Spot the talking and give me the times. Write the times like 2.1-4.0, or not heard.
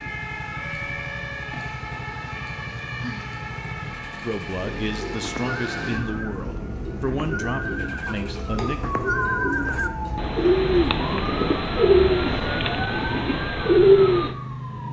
4.2-8.8.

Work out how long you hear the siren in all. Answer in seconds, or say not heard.
15 s.